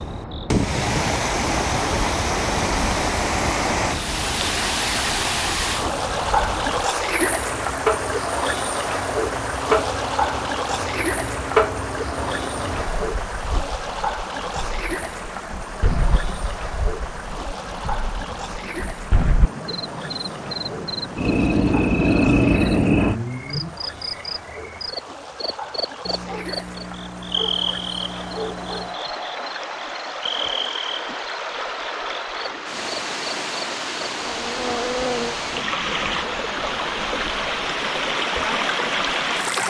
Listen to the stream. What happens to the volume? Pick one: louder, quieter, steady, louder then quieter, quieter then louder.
quieter then louder.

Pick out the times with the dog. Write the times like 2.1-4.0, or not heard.
26.1-29.0.